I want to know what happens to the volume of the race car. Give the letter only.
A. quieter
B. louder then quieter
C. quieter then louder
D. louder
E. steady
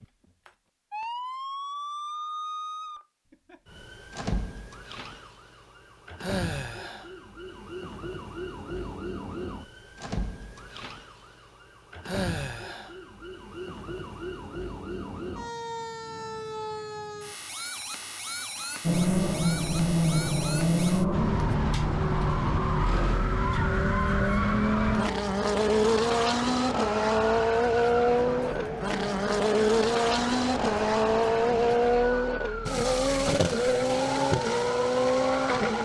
E.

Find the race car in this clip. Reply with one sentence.
You can hear the race car from 18.8 to 35.8 s.